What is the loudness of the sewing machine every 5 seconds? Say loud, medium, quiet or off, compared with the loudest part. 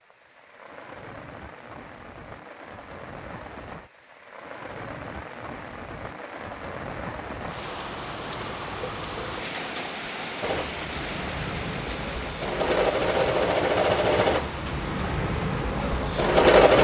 off, off, medium, loud.